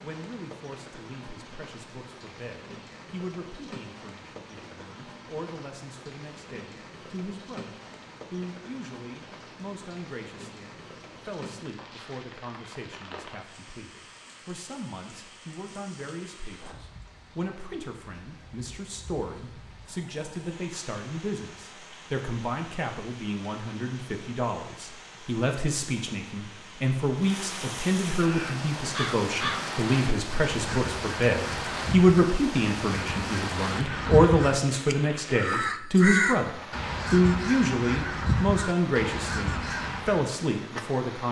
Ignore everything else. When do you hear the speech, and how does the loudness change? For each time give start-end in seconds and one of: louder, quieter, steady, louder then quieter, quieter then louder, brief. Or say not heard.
0.0-41.2 louder.